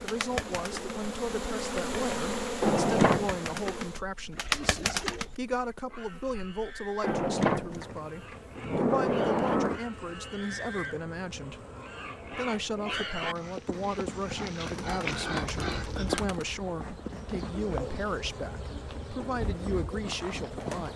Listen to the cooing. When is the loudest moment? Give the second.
5 s.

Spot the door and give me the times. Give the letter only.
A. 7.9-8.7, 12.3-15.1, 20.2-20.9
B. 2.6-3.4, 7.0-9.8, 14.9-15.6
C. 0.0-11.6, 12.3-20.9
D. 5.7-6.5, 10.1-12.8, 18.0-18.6
B.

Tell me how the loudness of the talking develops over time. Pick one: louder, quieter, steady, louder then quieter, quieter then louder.
steady.